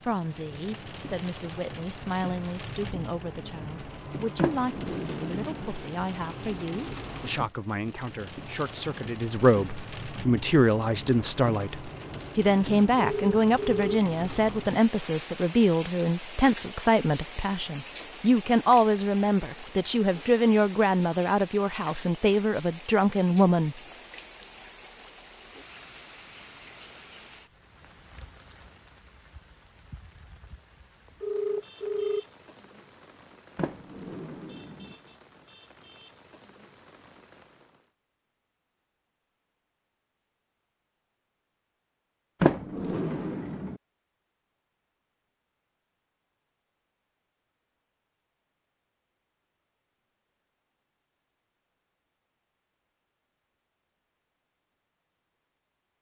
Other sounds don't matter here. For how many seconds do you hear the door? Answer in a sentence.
The door can be heard for 4 seconds in total.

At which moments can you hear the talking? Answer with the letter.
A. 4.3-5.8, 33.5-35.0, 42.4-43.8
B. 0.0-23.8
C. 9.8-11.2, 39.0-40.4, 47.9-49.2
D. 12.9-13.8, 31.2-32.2
B.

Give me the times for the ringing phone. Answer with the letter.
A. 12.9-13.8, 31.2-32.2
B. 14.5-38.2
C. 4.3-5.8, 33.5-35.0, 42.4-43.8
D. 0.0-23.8
A.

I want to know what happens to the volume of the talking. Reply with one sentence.
The loudness of the talking goes up.